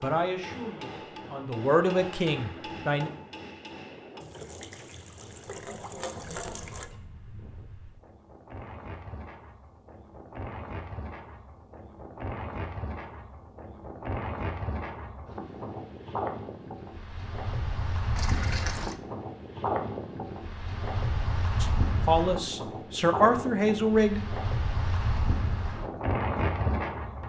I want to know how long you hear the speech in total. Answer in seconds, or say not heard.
6 s.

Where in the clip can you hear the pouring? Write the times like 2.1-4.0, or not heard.
4.2-6.8, 18.1-18.9.